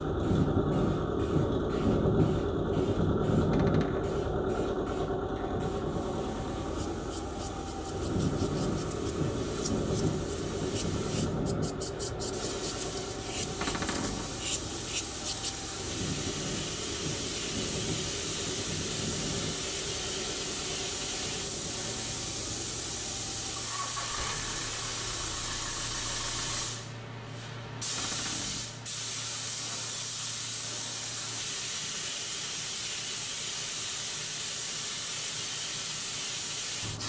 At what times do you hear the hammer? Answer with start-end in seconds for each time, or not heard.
not heard.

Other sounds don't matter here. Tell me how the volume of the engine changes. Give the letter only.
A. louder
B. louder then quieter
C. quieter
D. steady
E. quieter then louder
C.